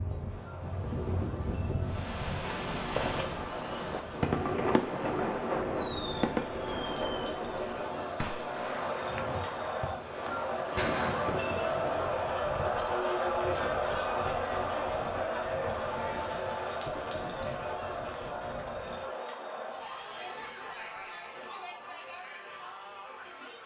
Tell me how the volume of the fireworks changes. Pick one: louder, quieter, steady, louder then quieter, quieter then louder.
quieter.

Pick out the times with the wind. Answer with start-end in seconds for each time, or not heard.
0.0-19.1.